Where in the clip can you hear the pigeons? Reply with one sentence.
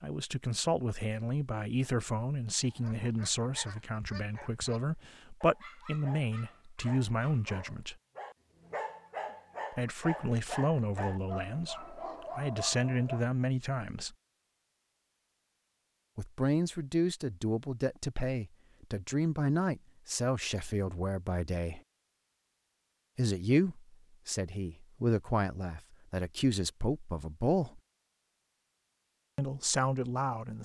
The pigeons can't be heard in this clip.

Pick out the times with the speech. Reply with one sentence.
You can hear the speech from 0.0 to 8.0 s, from 9.7 to 14.2 s, from 16.1 to 21.8 s, from 23.1 to 27.8 s and from 29.4 to 30.5 s.